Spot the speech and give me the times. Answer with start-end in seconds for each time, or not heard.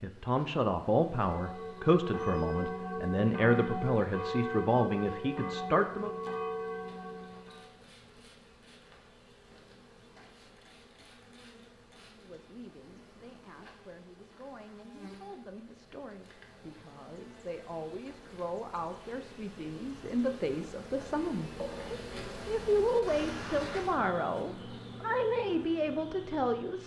0.0-6.2, 12.1-26.8.